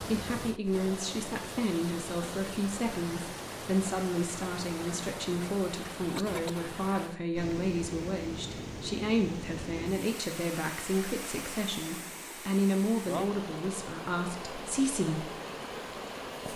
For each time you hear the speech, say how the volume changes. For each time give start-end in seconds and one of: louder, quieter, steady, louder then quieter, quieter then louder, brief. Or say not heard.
0.0-15.3 steady.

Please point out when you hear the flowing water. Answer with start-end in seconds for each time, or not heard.
0.0-16.5.